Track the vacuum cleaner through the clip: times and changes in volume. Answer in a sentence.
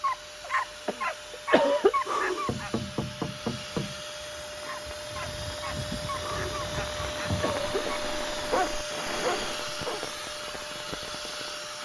The vacuum cleaner can be heard from 0.0 to 11.8 s, getting louder.